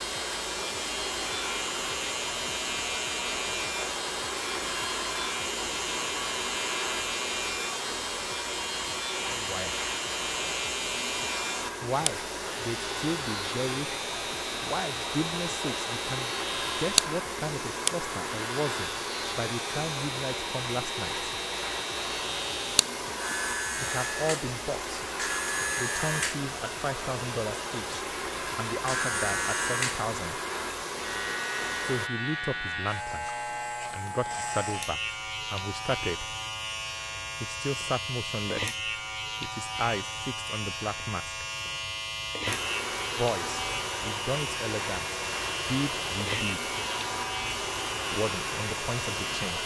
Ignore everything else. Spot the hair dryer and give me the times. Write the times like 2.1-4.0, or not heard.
0.0-32.1, 42.5-49.6.